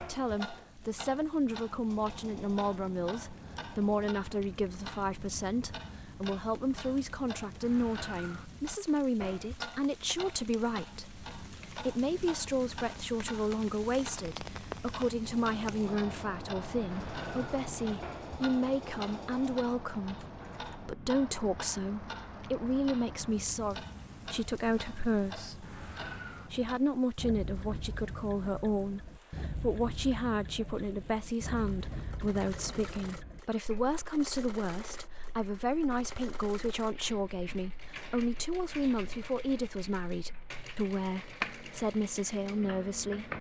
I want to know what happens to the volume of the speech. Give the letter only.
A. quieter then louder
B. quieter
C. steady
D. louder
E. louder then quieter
C.